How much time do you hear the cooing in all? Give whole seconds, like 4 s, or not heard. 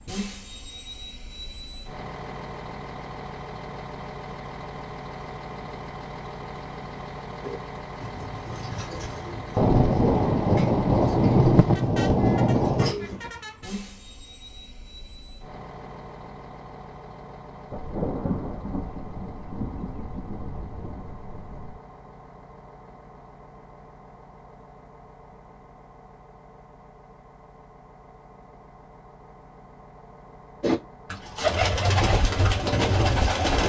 9 s.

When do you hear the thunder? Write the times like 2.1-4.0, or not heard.
9.6-12.9, 17.7-21.8.